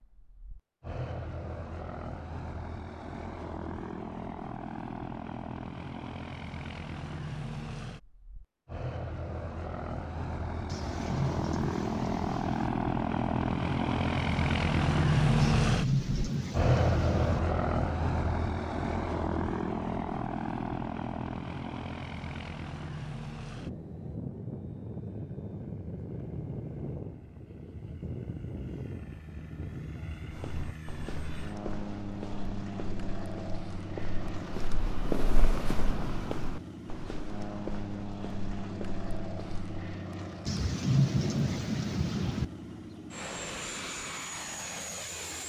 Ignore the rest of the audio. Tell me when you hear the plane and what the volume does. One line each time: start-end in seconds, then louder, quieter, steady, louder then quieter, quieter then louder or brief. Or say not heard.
0.0-45.4 louder then quieter.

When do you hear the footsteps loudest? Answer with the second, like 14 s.
35 s.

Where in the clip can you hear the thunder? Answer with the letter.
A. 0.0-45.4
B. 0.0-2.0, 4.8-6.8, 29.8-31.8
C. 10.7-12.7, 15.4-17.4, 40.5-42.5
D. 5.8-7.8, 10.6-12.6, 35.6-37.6
C.